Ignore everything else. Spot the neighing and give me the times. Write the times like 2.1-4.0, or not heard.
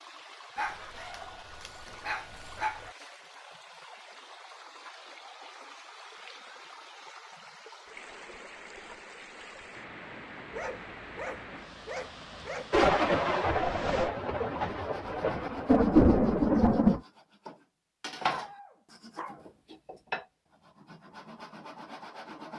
not heard.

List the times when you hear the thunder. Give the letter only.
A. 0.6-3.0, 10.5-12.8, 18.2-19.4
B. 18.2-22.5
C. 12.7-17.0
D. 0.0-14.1
C.